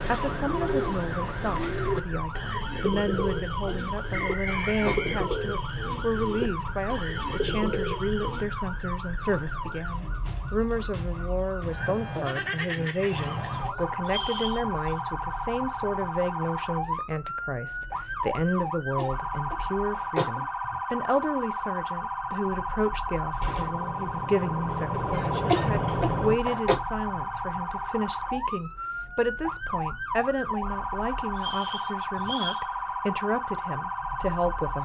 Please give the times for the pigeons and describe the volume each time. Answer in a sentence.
The pigeons can be heard from 0.0 to 8.4 s, at a steady volume.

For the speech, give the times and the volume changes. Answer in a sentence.
The speech can be heard from 0.1 to 34.7 s, at a steady volume.